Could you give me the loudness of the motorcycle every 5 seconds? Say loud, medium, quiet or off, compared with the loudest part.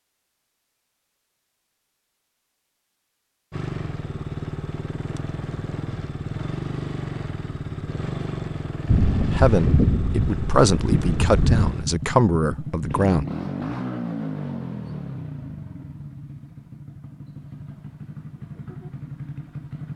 loud, loud, loud, medium.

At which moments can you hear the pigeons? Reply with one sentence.
You can't hear the pigeons here.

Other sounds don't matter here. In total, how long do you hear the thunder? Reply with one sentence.
The thunder can be heard for 3 seconds in total.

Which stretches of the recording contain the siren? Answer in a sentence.
You can't hear the siren here.